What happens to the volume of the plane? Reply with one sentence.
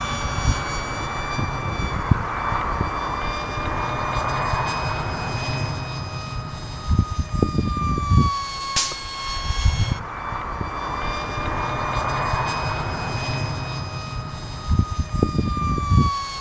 The volume of the plane stays about the same.